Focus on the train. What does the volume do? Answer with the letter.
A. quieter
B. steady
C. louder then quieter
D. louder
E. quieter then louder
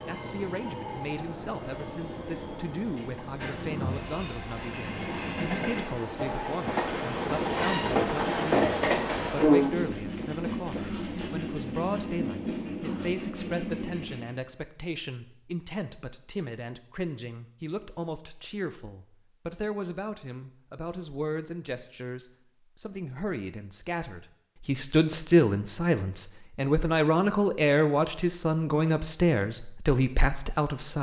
C.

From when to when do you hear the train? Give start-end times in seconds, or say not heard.
0.0-14.3.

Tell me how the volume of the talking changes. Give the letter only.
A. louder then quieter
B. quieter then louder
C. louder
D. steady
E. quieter
C.